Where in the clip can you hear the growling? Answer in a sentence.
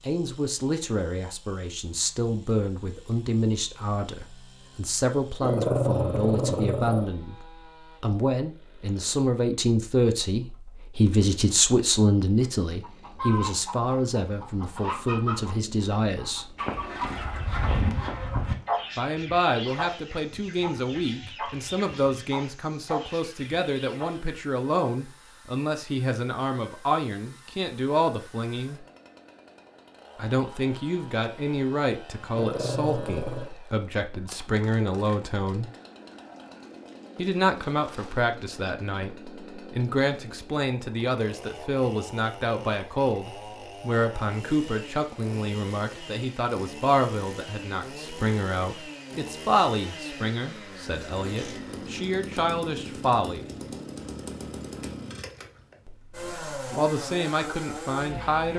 The growling can be heard from 5.4 to 7.1 s and from 32.4 to 33.5 s.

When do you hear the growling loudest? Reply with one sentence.
The volume of the growling peaks at 6 seconds.